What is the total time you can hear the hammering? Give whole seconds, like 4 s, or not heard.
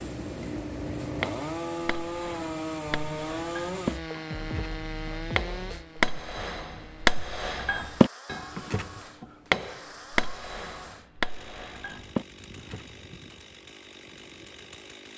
12 s.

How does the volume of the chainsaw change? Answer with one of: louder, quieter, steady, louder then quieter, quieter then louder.
quieter.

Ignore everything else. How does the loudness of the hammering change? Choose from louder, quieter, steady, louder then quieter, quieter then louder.
louder then quieter.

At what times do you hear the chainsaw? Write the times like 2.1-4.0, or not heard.
0.0-15.1.